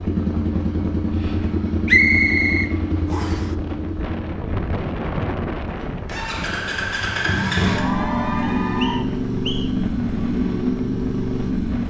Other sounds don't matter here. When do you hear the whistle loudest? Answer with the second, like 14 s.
2 s.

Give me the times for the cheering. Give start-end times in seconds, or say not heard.
7.2-9.1.